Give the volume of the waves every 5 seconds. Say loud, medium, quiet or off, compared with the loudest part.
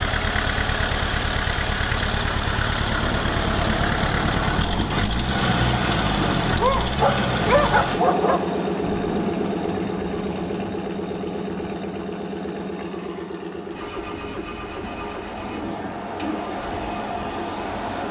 loud, loud, medium, loud.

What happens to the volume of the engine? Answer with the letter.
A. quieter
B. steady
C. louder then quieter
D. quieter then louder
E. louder
A.